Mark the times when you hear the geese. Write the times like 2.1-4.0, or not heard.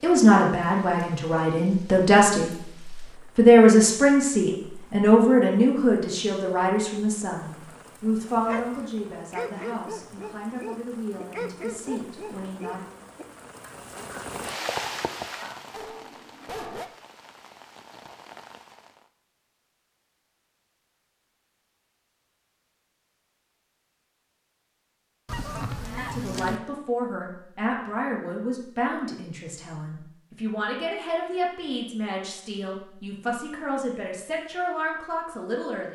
25.2-26.6.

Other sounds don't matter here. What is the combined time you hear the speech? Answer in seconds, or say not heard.
23 s.